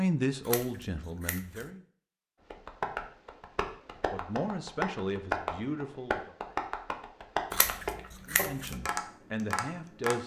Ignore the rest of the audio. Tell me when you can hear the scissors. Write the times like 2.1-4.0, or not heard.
0.5-1.6, 7.5-8.8.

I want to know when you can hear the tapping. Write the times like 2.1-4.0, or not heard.
2.5-10.2.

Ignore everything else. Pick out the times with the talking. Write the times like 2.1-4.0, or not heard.
0.0-1.8, 4.1-6.3, 8.2-10.2.